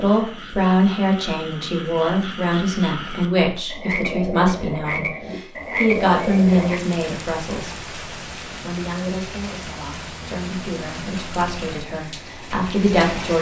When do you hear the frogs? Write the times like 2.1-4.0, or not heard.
0.0-6.8.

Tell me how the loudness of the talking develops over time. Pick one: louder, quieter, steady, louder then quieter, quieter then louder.
quieter then louder.